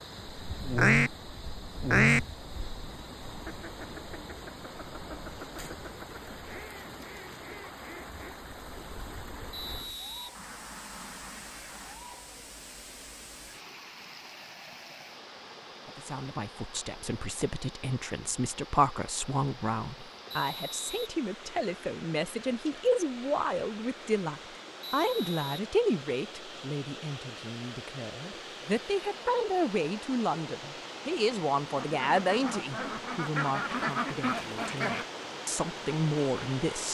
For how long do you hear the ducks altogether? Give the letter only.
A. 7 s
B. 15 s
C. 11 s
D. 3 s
B.